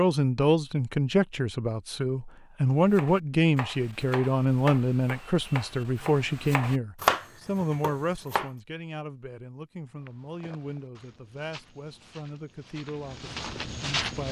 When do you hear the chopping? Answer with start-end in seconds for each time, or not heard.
2.8-8.5.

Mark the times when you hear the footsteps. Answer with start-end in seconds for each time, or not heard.
9.9-14.2.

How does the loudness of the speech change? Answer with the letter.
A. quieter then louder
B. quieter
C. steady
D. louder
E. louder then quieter
B.